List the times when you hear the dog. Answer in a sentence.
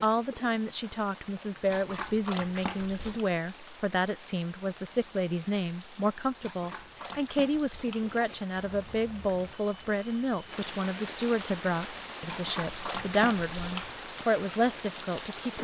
The dog can be heard from 1.7 to 3.2 s, from 6.4 to 8.4 s and from 12.2 to 14.0 s.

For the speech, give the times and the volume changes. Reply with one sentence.
You can hear the speech from 0.0 to 15.5 s, at a steady volume.